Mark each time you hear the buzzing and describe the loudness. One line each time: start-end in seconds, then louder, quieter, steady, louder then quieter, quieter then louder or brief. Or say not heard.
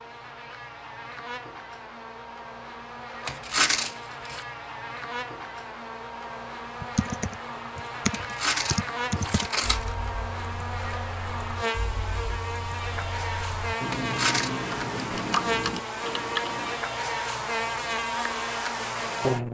0.0-19.4 louder.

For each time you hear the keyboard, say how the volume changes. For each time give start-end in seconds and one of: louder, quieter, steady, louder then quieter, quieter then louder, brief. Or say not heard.
6.8-16.8 quieter then louder.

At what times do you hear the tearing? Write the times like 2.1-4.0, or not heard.
3.2-4.5, 8.1-9.9, 13.9-14.5.